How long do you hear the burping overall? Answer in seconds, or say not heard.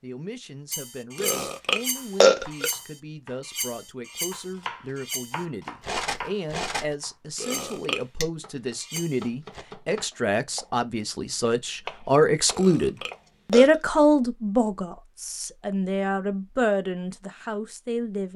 3 s.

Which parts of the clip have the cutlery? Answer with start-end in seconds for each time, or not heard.
0.7-9.7.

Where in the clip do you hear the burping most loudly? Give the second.
2 s.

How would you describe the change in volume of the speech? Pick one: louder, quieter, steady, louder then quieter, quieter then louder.
louder then quieter.